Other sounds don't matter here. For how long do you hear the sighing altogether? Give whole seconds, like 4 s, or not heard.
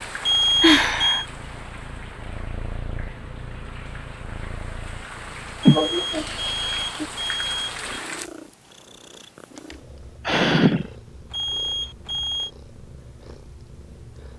3 s.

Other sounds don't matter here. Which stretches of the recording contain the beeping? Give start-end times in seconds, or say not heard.
0.2-1.2, 5.6-7.8, 11.3-12.5.